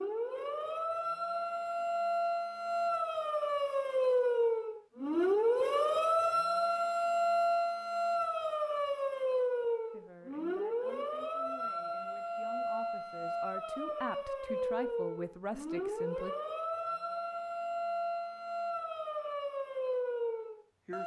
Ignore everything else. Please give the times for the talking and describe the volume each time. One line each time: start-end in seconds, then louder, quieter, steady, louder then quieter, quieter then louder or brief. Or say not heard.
9.9-16.4 louder.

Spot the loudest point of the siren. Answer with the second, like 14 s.
6 s.